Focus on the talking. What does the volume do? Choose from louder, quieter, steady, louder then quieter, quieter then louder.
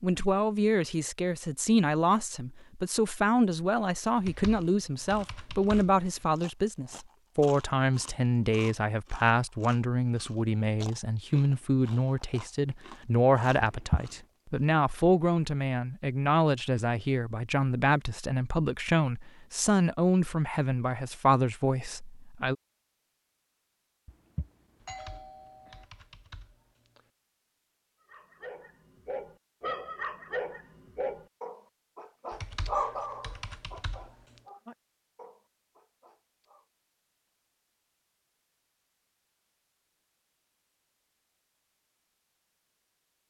steady.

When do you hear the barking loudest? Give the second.
33 s.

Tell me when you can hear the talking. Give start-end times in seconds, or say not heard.
0.0-22.6.